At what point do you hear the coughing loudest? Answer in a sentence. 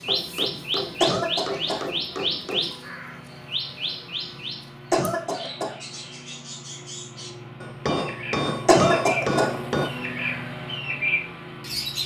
The loudest moment of the coughing is at 9 seconds.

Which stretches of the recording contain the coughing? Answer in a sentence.
You can hear the coughing from 1.0 to 1.9 s, from 4.9 to 5.8 s and from 8.7 to 9.6 s.